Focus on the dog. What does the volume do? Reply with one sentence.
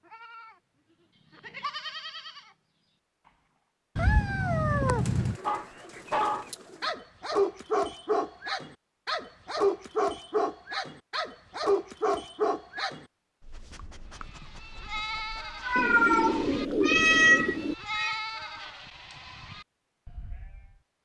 The loudness of the dog goes down.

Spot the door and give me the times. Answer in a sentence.
You can't hear the door here.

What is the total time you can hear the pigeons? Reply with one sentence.
You can hear the pigeons for 4 seconds altogether.